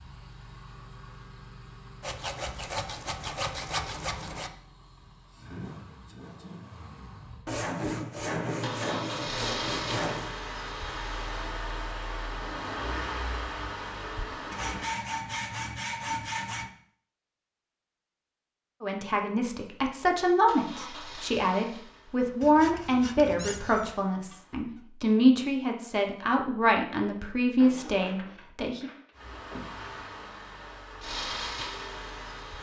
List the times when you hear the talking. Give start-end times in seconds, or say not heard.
18.8-28.9.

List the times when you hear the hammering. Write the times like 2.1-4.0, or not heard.
not heard.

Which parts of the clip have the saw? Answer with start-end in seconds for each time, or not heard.
2.0-4.5, 7.5-10.3, 14.5-16.7, 22.4-23.9, 27.6-29.9.